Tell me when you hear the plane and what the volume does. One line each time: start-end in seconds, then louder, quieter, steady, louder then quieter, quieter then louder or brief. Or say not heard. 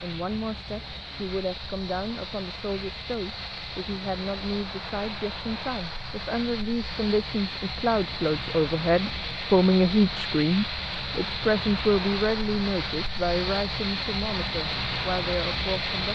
0.0-16.1 louder.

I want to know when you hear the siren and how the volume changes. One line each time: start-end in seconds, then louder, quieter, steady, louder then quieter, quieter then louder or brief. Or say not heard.
not heard.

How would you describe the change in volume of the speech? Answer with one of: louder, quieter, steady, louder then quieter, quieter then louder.
louder then quieter.